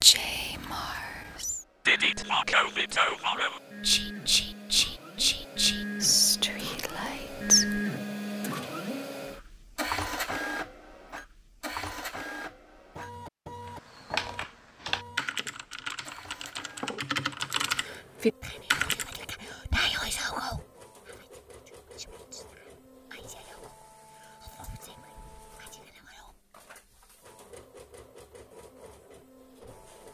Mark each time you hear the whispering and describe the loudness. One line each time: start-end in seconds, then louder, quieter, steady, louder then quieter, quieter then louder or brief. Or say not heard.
0.0-7.8 louder
17.7-26.4 louder then quieter.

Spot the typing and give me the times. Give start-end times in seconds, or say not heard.
14.1-19.1.